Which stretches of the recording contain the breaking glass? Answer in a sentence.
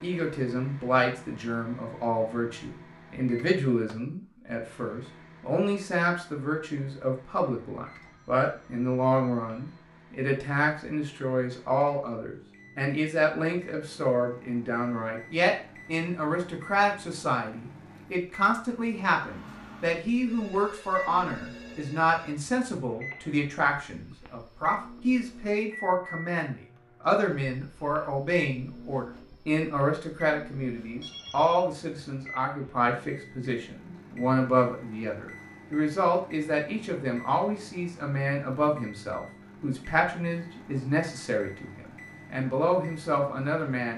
The breaking glass can't be heard in this clip.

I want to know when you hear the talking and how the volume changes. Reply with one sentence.
You can hear the talking from 0.0 to 43.9 s, at a steady volume.